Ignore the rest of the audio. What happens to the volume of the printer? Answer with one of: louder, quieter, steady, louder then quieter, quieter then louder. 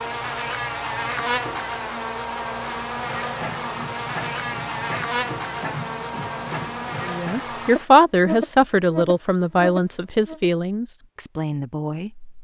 steady.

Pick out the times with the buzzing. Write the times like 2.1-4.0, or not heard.
0.0-10.4.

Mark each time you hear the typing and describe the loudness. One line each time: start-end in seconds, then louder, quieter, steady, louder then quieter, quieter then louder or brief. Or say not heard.
not heard.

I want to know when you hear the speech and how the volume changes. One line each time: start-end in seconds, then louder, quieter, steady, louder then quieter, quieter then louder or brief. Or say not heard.
7.0-12.3 quieter.